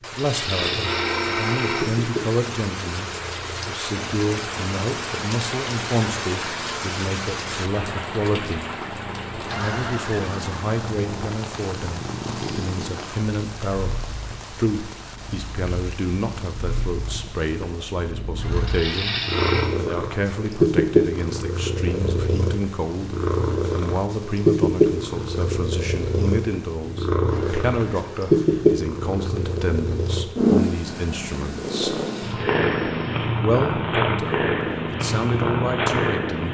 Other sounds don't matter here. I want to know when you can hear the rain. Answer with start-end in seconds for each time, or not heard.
0.0-30.4.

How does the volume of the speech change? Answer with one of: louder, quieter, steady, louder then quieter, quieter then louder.
steady.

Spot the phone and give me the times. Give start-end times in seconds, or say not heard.
0.1-2.0, 18.6-19.6, 32.0-33.3.